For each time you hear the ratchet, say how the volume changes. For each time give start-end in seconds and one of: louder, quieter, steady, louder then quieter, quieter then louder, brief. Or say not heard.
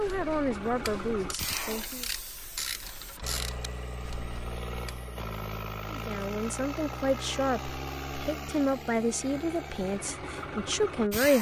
0.0-5.0 louder then quieter.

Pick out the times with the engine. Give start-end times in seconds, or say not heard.
0.0-11.3.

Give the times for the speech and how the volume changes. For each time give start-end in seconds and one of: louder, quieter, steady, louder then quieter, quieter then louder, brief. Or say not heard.
0.0-2.0 brief
5.9-11.3 steady.